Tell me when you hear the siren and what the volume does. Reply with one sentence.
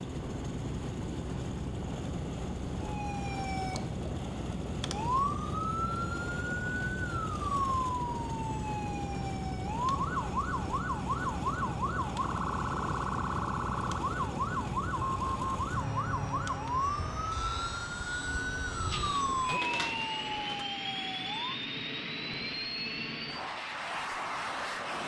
You can hear the siren from 2.8 to 21.6 s, at a steady volume.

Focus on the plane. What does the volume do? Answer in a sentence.
The volume of the plane stays about the same.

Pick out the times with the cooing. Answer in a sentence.
You can hear the cooing from 18.9 to 20.6 s.